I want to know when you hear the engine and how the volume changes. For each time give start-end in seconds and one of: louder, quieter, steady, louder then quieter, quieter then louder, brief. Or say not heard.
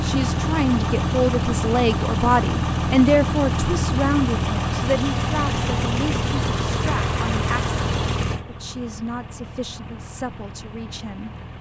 0.0-11.5 quieter.